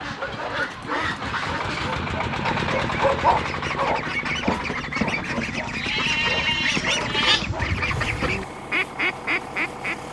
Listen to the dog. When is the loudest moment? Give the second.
3 s.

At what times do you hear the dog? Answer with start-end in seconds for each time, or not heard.
0.1-7.8.